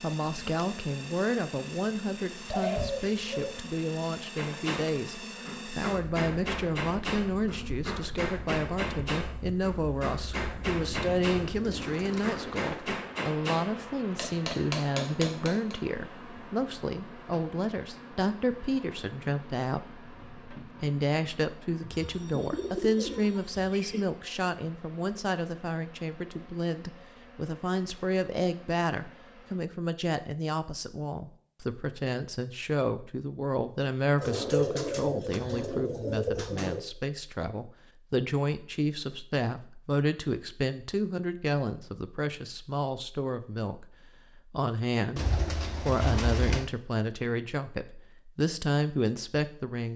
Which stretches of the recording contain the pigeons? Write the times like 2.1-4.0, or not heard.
2.5-3.6, 11.3-12.8, 21.9-24.0, 34.1-36.8, 45.1-46.6.